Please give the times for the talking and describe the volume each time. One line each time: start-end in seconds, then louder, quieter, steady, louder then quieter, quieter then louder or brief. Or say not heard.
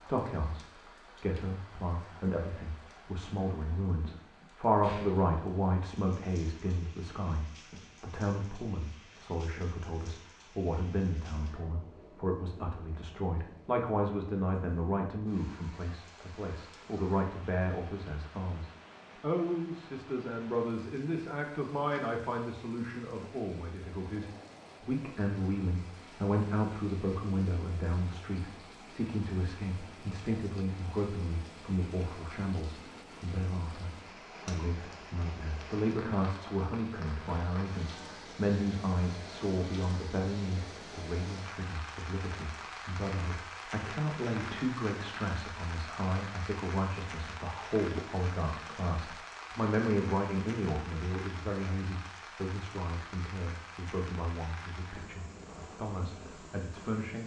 0.0-57.2 steady.